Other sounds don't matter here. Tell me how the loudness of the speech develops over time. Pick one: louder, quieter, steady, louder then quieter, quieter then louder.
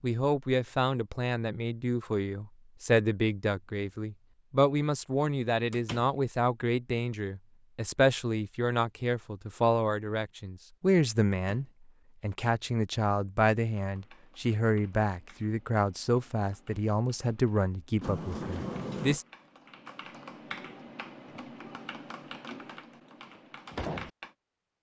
steady.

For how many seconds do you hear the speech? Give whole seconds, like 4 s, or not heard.
19 s.